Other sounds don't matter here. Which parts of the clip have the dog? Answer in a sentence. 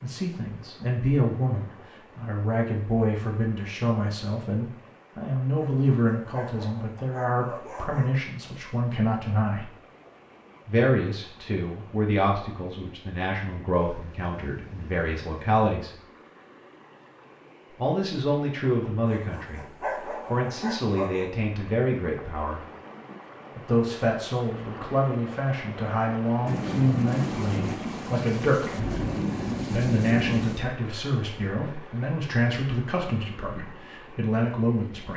You can hear the dog from 5.5 to 8.1 s and from 19.1 to 21.2 s.